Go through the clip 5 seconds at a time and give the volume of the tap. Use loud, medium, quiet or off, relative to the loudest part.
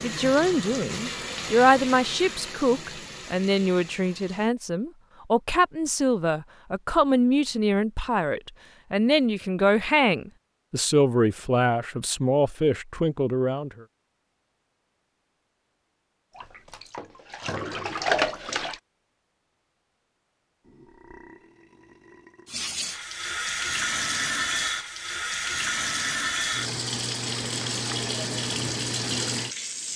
medium, off, off, loud, loud, loud.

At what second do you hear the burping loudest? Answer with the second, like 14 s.
21 s.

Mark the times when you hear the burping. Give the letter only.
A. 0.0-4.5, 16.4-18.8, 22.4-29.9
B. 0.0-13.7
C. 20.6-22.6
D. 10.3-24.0
C.